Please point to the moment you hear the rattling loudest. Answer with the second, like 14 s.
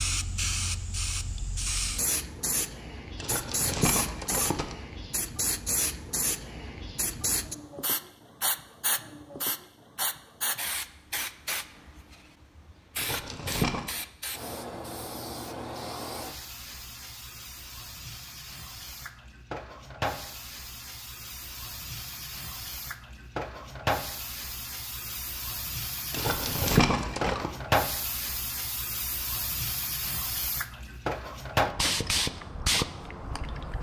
27 s.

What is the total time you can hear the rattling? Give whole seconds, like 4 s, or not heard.
4 s.